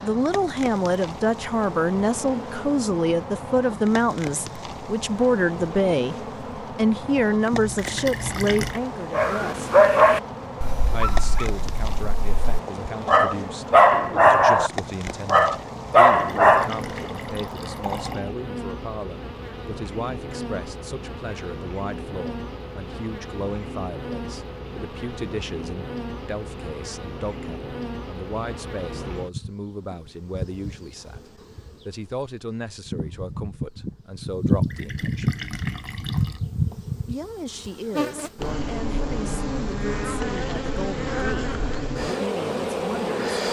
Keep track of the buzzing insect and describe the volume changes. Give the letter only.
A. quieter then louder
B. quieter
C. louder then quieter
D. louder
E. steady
D.